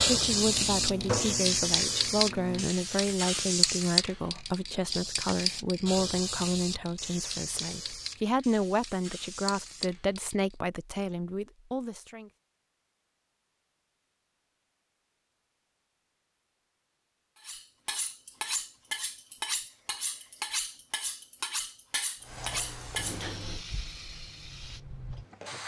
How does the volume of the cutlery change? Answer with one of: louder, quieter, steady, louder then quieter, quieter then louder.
steady.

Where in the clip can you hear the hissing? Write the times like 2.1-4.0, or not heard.
0.0-10.6, 22.2-25.6.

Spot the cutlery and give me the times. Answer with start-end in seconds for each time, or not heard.
17.4-23.2.